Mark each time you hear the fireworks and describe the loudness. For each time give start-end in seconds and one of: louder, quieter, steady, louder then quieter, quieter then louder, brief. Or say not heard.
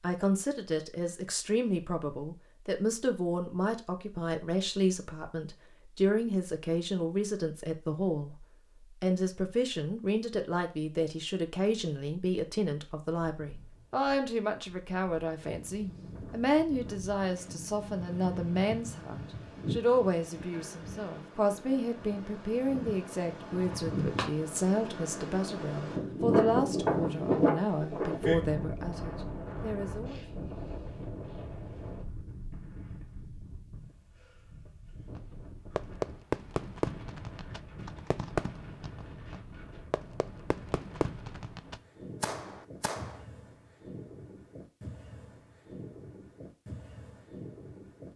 35.1-43.2 quieter then louder.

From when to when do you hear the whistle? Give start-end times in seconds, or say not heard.
not heard.